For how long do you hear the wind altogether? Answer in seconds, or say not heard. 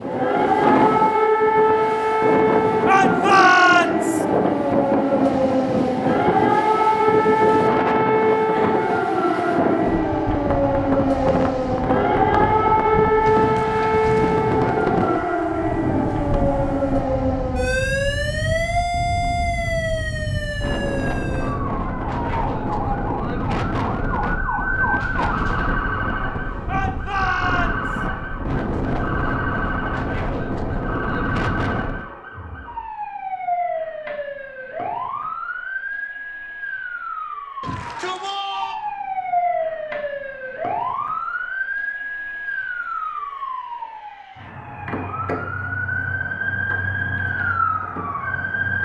32 s.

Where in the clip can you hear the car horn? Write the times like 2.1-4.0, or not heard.
not heard.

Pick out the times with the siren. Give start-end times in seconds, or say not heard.
0.0-48.8.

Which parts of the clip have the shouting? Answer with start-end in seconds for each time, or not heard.
2.9-4.2, 26.6-28.1, 37.6-38.8.